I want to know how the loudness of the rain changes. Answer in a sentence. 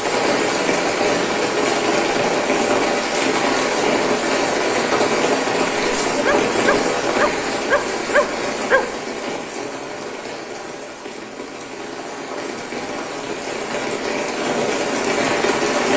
The loudness of the rain goes down, then up.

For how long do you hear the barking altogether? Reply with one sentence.
The barking can be heard for 3 seconds in total.